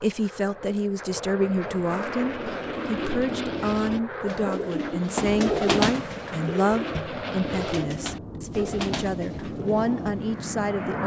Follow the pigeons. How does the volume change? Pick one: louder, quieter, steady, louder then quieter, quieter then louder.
louder then quieter.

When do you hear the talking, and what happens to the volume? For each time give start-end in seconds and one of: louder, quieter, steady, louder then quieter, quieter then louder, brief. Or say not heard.
0.0-11.0 steady.